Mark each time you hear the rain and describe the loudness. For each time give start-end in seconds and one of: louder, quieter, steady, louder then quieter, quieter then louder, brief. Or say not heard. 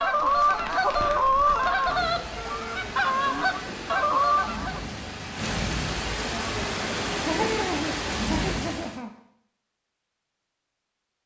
0.0-9.0 louder.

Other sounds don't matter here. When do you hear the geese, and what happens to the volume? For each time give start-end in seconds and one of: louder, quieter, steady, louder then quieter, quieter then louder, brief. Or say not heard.
0.0-4.8 quieter then louder.